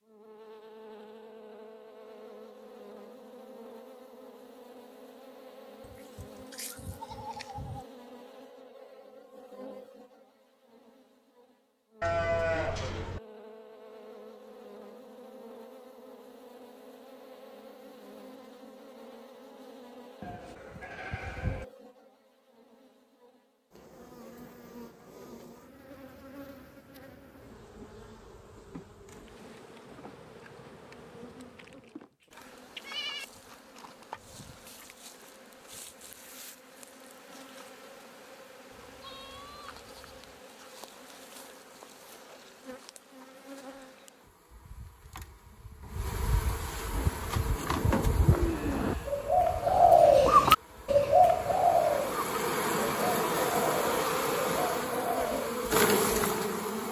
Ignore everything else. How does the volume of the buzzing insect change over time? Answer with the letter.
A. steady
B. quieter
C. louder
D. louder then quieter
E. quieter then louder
C.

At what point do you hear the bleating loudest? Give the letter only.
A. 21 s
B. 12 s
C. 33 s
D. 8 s
B.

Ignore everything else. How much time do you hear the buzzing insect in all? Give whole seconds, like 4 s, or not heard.
57 s.